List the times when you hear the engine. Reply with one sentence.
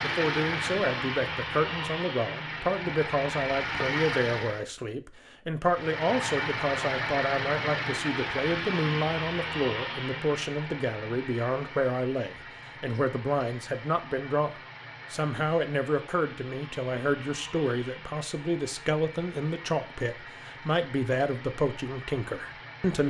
The engine can be heard from 0.0 to 4.7 s and from 5.7 to 23.0 s.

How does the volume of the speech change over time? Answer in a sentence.
The loudness of the speech stays about the same.